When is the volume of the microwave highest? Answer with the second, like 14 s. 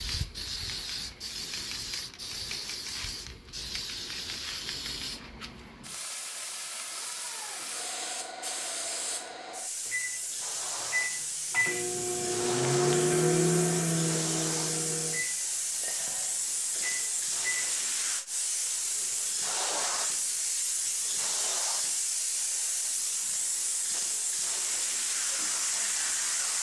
13 s.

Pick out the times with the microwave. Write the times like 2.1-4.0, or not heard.
9.8-17.7.